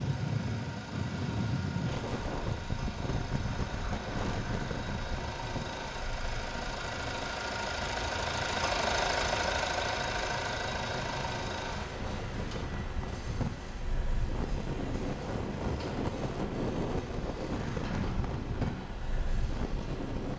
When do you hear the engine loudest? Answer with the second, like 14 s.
9 s.